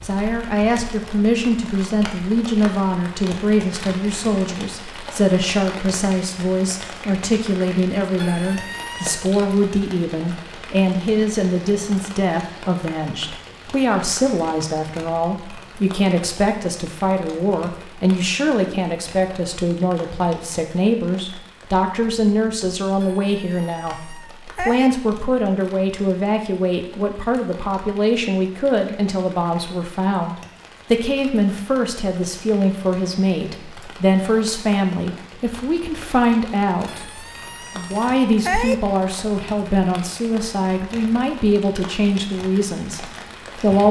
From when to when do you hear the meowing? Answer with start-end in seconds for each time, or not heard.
8.2-9.2, 23.0-24.9, 36.9-38.8.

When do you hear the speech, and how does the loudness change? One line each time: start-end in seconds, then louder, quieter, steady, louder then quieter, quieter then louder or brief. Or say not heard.
0.0-43.8 steady.